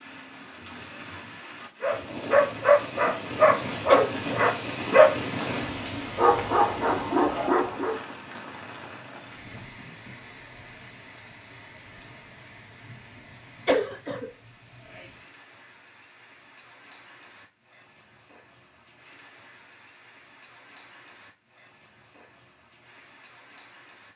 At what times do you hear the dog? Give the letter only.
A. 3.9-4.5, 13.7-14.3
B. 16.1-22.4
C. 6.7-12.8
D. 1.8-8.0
D.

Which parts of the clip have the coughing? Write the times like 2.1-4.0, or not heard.
3.9-4.5, 13.7-14.3.